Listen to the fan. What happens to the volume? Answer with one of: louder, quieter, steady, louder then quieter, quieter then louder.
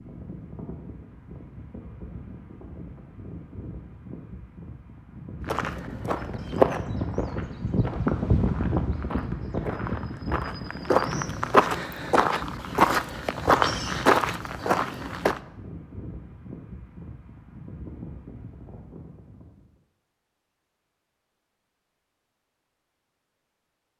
louder then quieter.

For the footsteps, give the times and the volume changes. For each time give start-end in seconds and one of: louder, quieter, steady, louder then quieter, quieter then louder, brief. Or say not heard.
5.5-15.4 quieter then louder.